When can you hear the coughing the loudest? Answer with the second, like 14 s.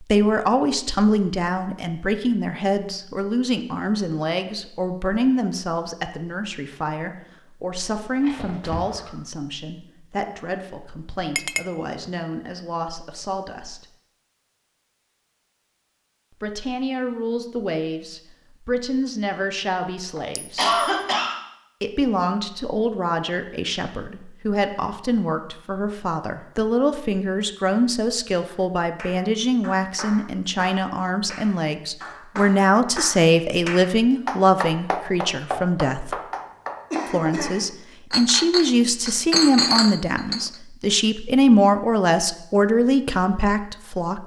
21 s.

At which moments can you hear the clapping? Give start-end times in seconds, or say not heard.
28.4-37.4.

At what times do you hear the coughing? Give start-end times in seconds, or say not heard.
8.2-9.1, 20.1-21.4, 36.9-37.6.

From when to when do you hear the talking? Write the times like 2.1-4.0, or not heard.
0.0-13.8, 16.4-20.8, 21.8-36.1, 37.1-44.2.